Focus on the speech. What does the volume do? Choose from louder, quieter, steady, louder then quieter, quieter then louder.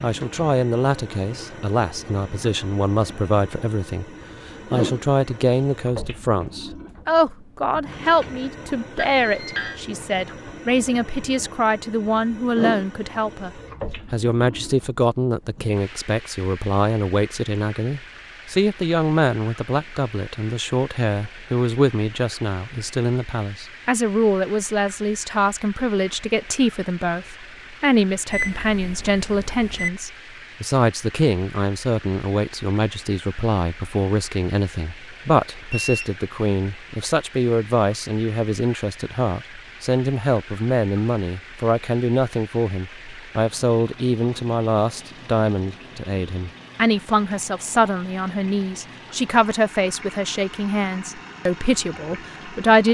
steady.